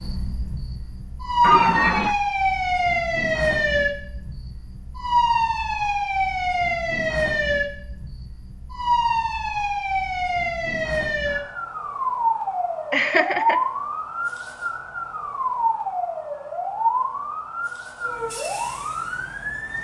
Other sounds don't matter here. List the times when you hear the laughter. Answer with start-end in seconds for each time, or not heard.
1.4-2.1, 12.9-13.6.